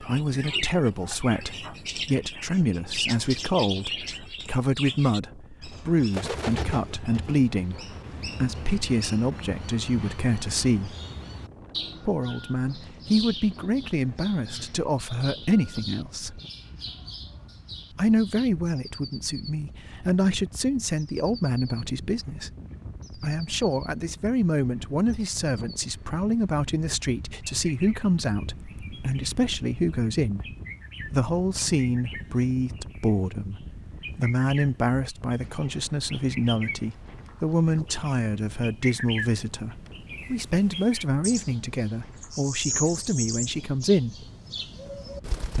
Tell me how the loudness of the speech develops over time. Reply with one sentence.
The loudness of the speech stays about the same.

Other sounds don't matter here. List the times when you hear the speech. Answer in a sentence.
You can hear the speech from 0.0 to 10.9 s, from 12.1 to 16.4 s, from 17.9 to 22.5 s, from 23.1 to 30.4 s and from 31.1 to 44.2 s.